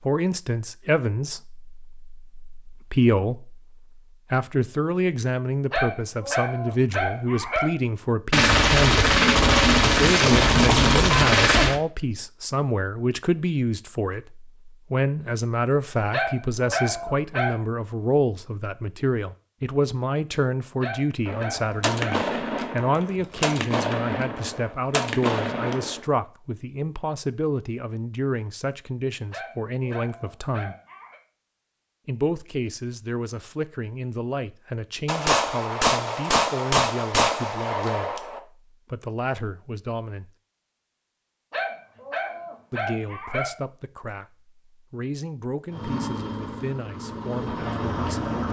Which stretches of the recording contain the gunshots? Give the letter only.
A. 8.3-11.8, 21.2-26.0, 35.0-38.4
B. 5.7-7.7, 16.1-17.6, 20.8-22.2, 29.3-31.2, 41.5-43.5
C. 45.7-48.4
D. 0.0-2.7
A.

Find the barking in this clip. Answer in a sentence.
The barking can be heard from 5.7 to 7.7 s, from 16.1 to 17.6 s, from 20.8 to 22.2 s, from 29.3 to 31.2 s and from 41.5 to 43.5 s.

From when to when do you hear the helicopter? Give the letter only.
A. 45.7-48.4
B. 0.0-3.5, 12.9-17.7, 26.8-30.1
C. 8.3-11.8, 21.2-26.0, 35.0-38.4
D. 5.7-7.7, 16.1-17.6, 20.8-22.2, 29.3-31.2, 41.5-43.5
A.